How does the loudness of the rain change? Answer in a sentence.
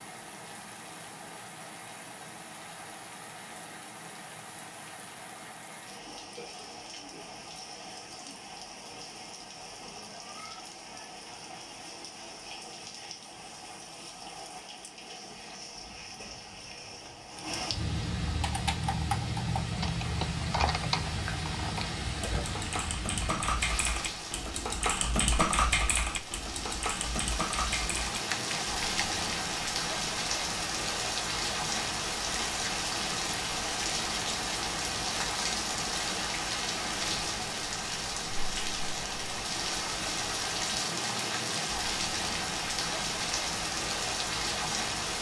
The loudness of the rain goes up.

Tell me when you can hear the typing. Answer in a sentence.
The typing can be heard from 18.4 to 29.1 s.